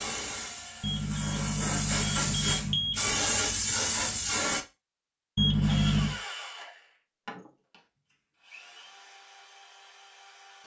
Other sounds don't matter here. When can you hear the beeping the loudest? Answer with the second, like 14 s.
6 s.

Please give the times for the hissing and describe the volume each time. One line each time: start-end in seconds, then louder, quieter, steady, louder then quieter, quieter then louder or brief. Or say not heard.
0.0-4.7 louder.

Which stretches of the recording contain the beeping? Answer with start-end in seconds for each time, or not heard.
0.8-3.1, 5.3-6.2.